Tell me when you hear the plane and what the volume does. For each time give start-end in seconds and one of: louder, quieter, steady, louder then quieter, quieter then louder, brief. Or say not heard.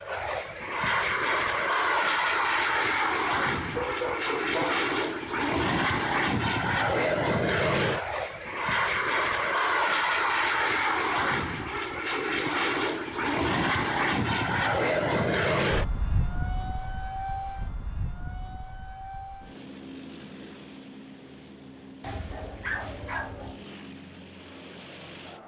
0.0-25.4 quieter.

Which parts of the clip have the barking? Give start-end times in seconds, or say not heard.
3.1-4.8, 22.0-23.6.